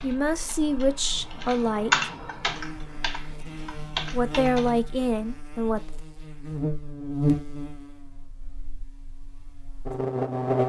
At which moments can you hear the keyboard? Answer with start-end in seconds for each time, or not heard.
0.0-4.8.